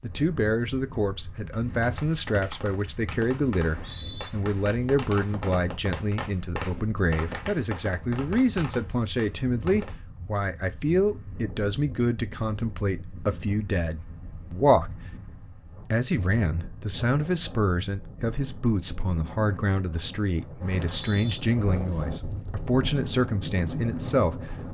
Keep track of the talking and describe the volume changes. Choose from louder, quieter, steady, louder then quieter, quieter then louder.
steady.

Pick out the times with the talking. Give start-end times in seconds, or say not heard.
0.0-15.0, 15.9-24.5.